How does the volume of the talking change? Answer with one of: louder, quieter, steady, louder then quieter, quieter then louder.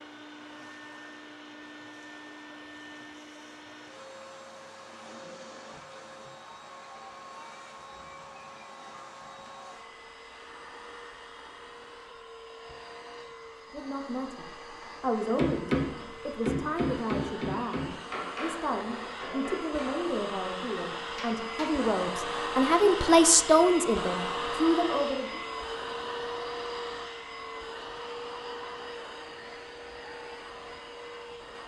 louder.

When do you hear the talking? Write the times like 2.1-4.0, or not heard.
13.7-25.4.